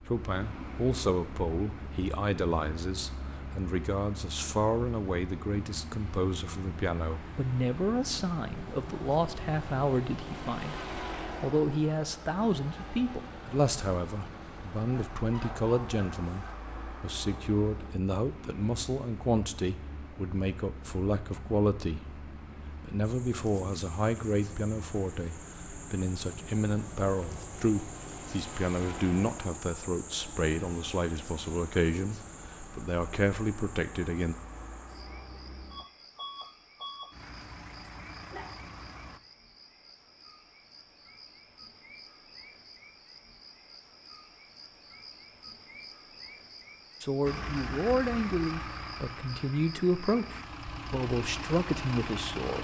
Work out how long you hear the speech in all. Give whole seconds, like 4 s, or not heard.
40 s.